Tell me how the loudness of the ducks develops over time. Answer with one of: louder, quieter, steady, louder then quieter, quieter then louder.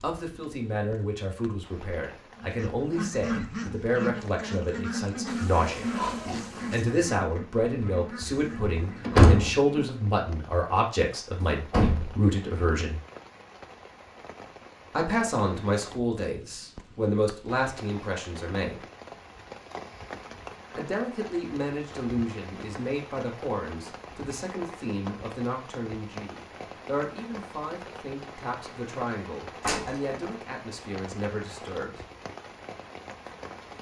quieter.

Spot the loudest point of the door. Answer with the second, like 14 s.
9 s.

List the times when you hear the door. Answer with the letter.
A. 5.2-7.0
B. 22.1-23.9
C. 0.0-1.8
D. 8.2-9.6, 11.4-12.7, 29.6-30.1
D.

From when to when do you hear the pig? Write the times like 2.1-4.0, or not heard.
5.2-7.0.